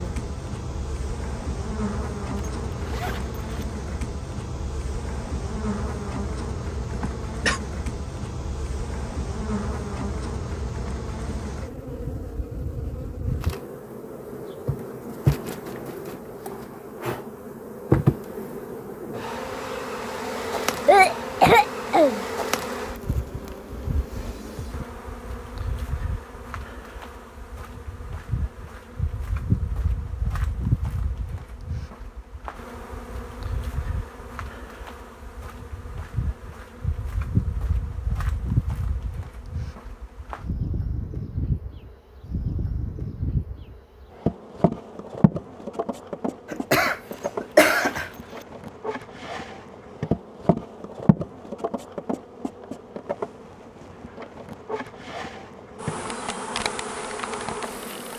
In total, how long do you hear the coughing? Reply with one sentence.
The coughing can be heard for 4 seconds in total.